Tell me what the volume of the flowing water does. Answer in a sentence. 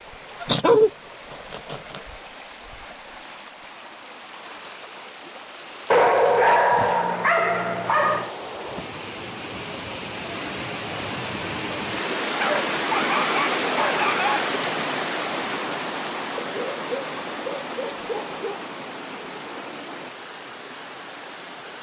The loudness of the flowing water goes up, then down.